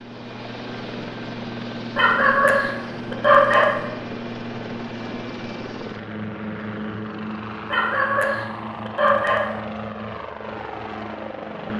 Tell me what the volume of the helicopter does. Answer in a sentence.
The volume of the helicopter stays about the same.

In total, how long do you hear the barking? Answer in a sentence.
You can hear the barking for 4 seconds altogether.